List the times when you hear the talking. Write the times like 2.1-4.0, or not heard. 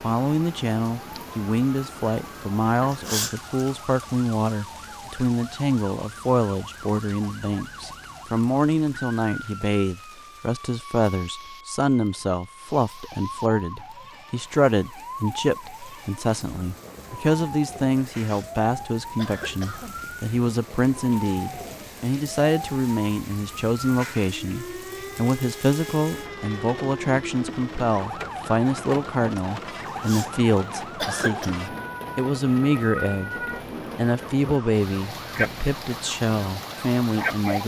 0.0-33.4, 34.0-37.6.